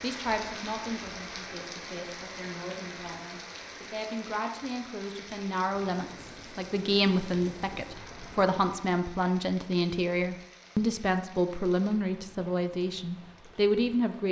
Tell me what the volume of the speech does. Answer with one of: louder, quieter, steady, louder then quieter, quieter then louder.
louder.